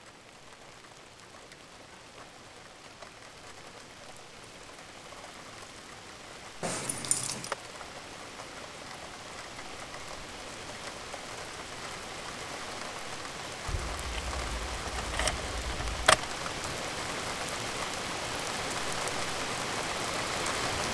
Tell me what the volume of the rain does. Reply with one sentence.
The volume of the rain goes up.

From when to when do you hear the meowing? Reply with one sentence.
The meowing can't be heard in this clip.